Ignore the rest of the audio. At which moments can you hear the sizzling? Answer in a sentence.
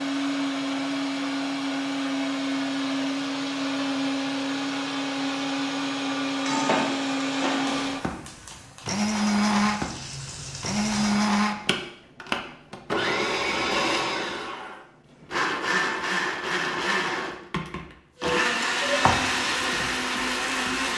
You can hear the sizzling from 6.3 to 11.2 s and from 18.2 to 20.9 s.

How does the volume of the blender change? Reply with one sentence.
The volume of the blender stays about the same.